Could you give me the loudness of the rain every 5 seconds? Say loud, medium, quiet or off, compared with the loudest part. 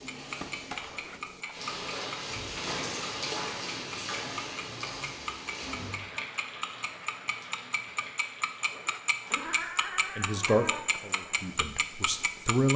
loud, medium, quiet.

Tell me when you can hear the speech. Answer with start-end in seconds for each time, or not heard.
10.2-12.7.